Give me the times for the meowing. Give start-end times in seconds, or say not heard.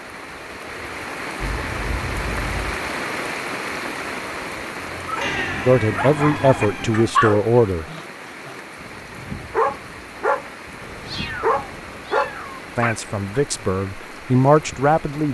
1.4-2.8, 5.2-7.2, 10.8-12.8.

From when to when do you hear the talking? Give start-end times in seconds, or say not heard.
5.7-7.8, 12.8-15.2.